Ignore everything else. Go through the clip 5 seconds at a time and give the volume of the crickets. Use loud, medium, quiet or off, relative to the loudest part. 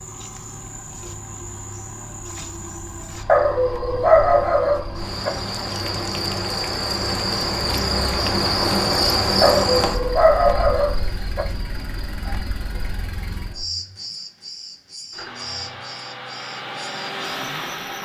quiet, loud, quiet, quiet.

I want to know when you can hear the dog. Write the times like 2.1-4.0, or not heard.
3.2-5.3, 9.4-11.4.